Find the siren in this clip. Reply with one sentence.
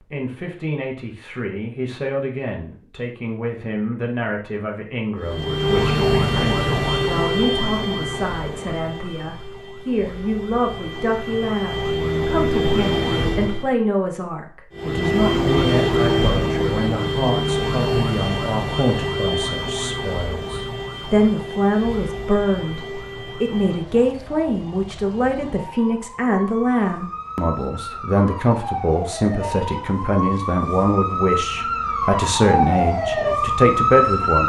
You can hear the siren from 5.2 to 13.7 s and from 14.7 to 34.4 s.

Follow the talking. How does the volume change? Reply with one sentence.
The loudness of the talking goes up.